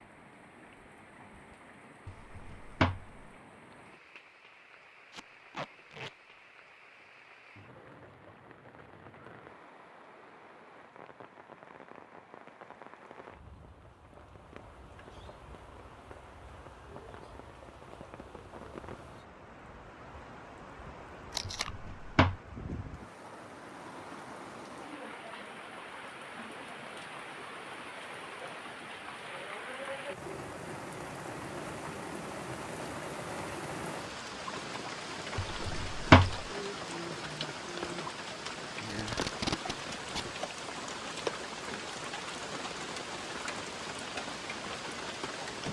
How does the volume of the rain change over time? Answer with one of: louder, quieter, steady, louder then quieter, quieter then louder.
louder.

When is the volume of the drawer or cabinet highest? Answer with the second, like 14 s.
36 s.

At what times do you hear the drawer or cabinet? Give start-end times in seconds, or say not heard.
2.0-3.1, 21.7-22.4, 35.6-36.4.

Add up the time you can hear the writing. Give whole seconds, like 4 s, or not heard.
not heard.